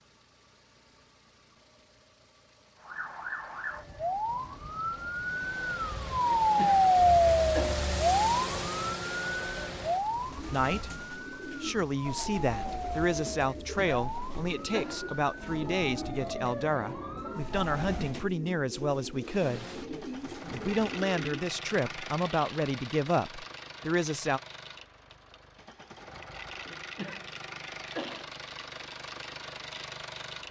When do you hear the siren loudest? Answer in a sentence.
The volume of the siren peaks at 7 seconds.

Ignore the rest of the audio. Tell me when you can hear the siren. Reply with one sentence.
The siren can be heard from 2.8 to 18.2 s.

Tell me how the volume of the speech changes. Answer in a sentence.
The loudness of the speech stays about the same.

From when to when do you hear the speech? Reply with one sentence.
The speech can be heard from 10.5 to 19.6 s and from 20.5 to 24.4 s.